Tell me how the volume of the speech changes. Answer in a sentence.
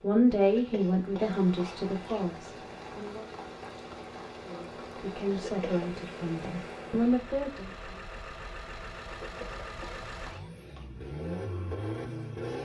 The loudness of the speech goes down, then up.